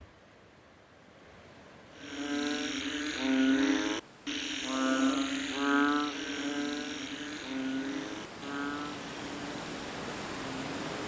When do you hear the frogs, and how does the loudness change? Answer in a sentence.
The frogs can be heard from 1.9 to 10.8 s, getting quieter.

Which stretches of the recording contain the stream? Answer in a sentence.
The stream can be heard from 0.0 to 11.0 s.